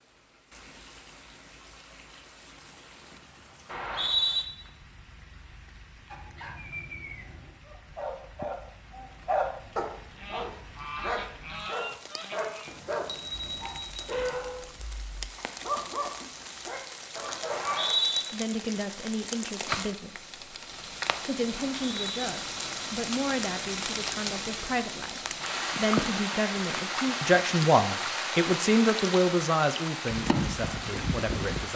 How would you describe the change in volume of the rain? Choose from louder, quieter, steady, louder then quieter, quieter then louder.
louder.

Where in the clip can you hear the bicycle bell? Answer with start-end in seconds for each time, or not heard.
12.7-14.0.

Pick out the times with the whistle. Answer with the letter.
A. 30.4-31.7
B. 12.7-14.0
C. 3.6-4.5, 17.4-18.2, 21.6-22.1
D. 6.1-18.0
C.